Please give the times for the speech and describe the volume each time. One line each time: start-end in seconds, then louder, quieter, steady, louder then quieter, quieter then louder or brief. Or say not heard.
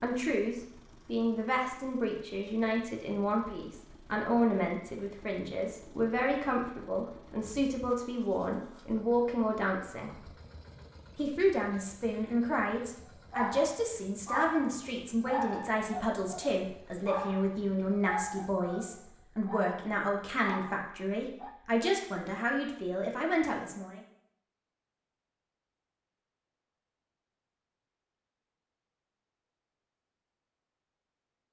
0.0-10.3 steady
11.2-24.0 steady.